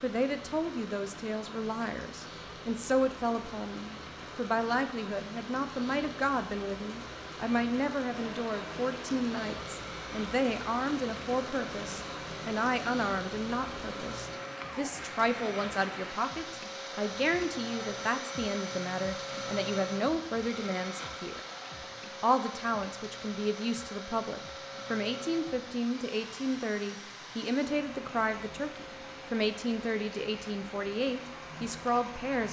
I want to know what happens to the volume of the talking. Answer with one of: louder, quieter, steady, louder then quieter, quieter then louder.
steady.